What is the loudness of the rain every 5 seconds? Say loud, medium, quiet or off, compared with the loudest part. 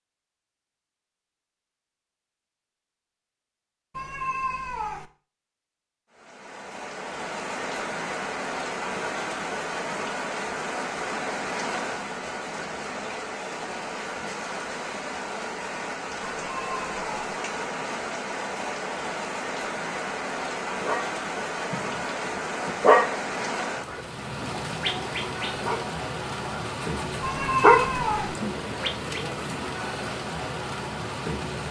off, loud, loud, loud, loud, loud, loud.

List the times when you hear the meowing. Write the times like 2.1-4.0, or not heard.
4.0-5.0, 16.2-17.4, 27.2-28.4.